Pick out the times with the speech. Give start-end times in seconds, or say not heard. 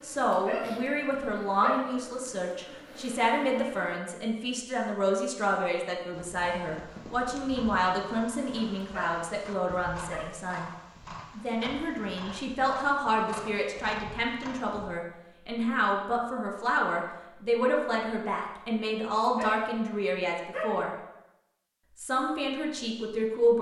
0.0-10.7, 11.3-20.9, 21.9-23.5.